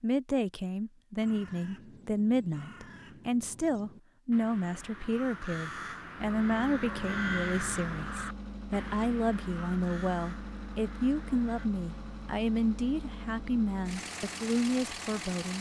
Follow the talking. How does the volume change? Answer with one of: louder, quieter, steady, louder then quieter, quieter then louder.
steady.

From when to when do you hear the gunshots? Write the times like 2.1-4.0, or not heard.
not heard.